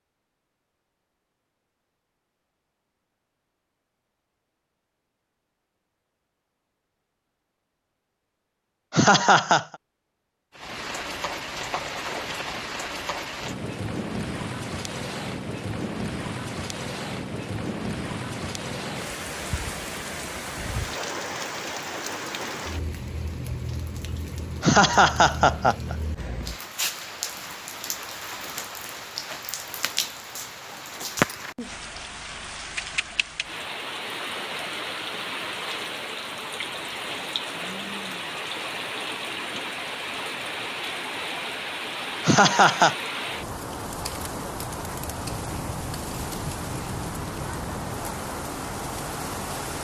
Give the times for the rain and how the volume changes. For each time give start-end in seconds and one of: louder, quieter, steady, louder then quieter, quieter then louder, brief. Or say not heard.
10.5-49.8 steady.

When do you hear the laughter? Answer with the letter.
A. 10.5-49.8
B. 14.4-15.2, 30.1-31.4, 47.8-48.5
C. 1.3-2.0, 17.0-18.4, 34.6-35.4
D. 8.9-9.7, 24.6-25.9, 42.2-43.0
D.